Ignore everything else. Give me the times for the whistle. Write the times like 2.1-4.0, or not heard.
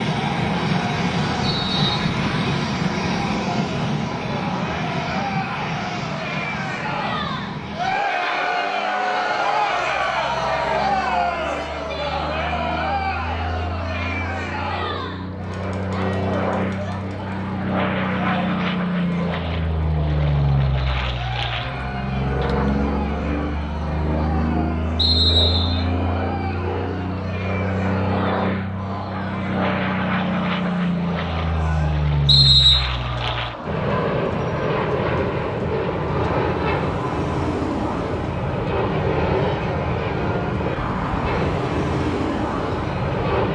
1.4-2.3, 24.9-25.9, 32.2-32.9.